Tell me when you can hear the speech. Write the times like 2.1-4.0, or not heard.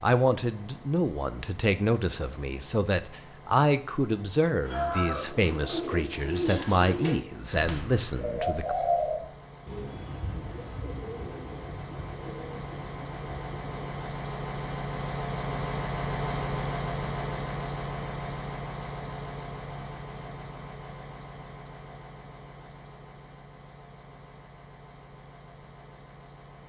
0.0-8.8.